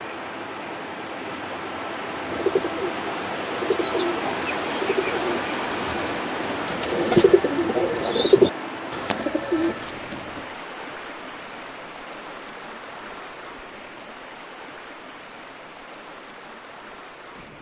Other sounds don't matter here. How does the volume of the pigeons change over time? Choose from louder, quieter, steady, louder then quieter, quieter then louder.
louder then quieter.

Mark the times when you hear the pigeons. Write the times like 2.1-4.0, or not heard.
2.1-10.4.